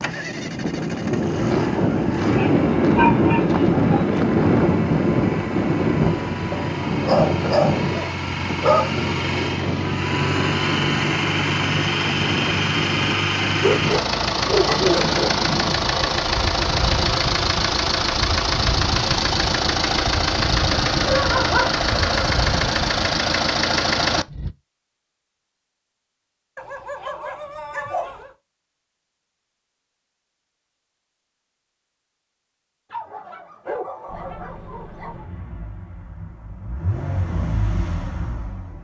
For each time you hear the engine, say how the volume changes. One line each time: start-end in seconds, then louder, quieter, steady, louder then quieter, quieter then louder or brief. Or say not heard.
0.0-24.6 louder
34.0-38.8 louder.